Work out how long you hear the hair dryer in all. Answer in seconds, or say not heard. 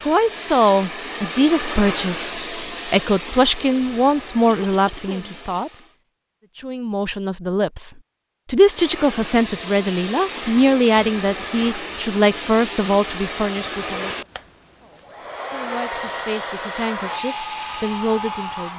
16 s.